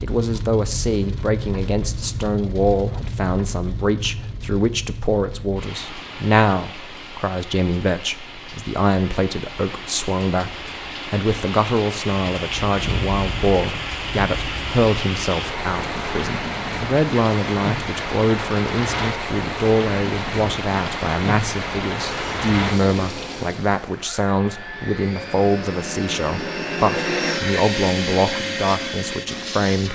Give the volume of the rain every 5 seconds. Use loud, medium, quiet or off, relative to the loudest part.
medium, medium, loud, loud, loud, off.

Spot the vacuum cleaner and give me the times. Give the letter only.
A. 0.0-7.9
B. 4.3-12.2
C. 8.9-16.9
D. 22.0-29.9
D.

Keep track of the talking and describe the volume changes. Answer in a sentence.
The volume of the talking stays about the same.